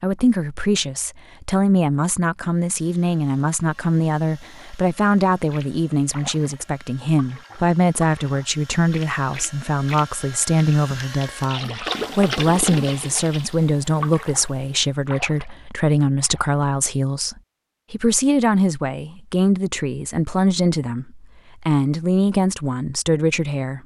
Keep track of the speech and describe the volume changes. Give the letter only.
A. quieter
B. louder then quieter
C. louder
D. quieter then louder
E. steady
E.